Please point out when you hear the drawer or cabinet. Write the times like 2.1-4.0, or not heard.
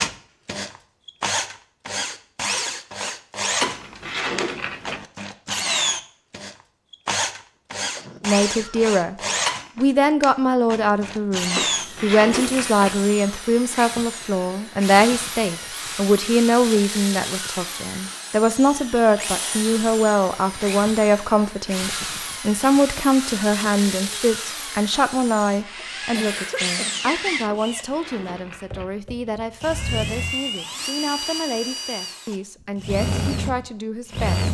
3.6-5.0, 11.6-13.0, 27.4-28.9.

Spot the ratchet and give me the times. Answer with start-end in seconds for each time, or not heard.
not heard.